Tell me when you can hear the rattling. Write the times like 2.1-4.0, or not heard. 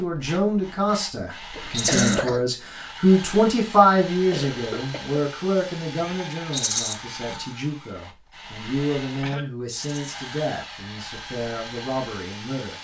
1.7-2.1, 6.5-7.0, 9.7-10.2.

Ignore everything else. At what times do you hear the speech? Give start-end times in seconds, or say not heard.
0.0-12.7.